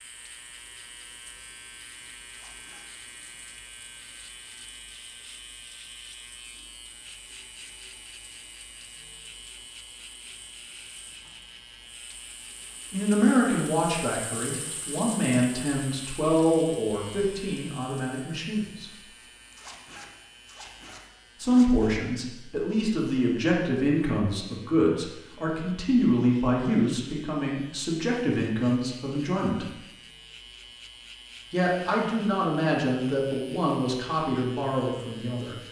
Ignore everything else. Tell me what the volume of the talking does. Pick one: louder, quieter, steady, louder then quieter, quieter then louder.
steady.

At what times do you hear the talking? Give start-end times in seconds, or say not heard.
12.9-18.9, 21.4-29.7, 31.5-35.6.